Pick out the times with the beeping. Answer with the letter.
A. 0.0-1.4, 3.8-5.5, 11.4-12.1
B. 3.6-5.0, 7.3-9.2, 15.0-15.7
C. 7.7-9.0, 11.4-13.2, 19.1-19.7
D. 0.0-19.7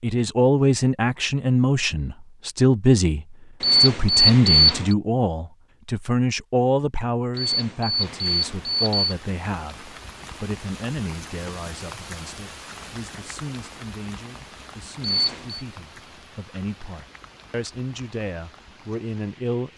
B.